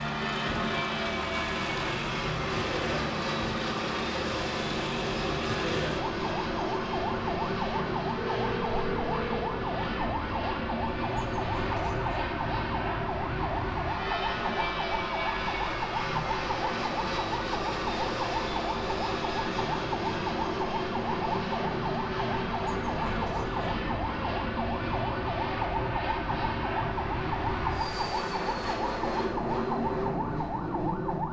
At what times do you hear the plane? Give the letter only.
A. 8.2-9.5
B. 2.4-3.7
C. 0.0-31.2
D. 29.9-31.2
C.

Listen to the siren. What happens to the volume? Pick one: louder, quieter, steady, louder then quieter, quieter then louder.
steady.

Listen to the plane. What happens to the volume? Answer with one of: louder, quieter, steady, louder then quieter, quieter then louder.
steady.